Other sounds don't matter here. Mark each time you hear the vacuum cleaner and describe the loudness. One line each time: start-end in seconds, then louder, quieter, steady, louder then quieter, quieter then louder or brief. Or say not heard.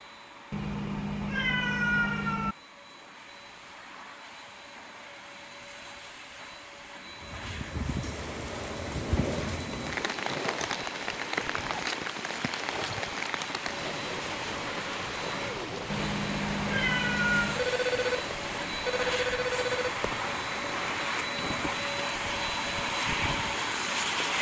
0.0-24.3 louder.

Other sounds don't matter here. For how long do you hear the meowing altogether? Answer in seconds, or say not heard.
4 s.